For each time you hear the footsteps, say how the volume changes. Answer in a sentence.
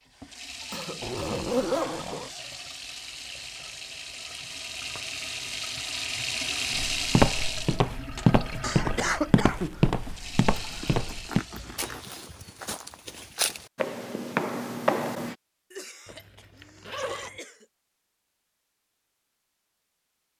The footsteps can be heard from 6.8 to 15.3 s, getting quieter then louder.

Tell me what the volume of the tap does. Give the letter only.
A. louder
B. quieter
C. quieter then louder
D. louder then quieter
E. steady
D.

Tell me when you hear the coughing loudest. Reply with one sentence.
The volume of the coughing peaks at 9 seconds.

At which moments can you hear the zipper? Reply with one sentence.
You can hear the zipper from 1.0 to 2.3 s, from 10.5 to 12.1 s and from 16.1 to 17.4 s.